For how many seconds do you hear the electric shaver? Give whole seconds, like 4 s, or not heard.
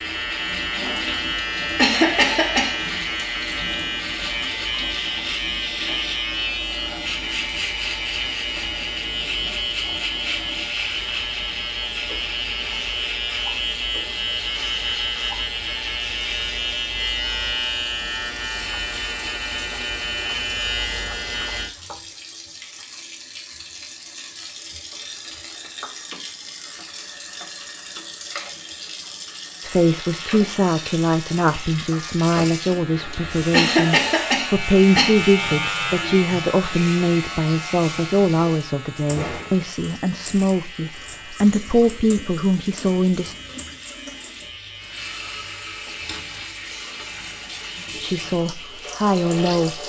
42 s.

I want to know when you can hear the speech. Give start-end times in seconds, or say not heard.
29.6-43.4, 48.0-49.8.